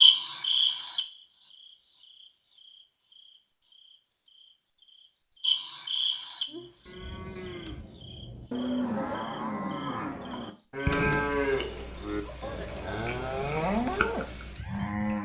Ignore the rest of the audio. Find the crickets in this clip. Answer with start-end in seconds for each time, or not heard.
0.0-14.9.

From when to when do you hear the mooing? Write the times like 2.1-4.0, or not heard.
6.5-15.2.